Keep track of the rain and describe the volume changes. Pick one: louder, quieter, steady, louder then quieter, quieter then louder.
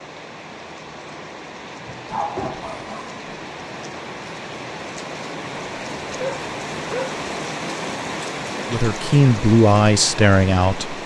louder.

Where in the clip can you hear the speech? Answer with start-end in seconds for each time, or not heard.
8.7-11.0.